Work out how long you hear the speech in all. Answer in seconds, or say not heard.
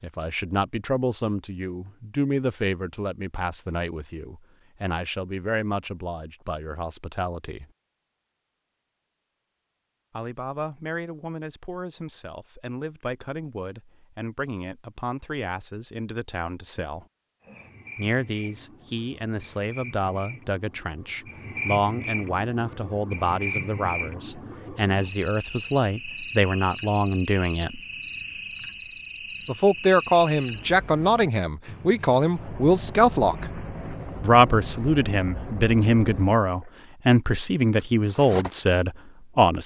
34 s.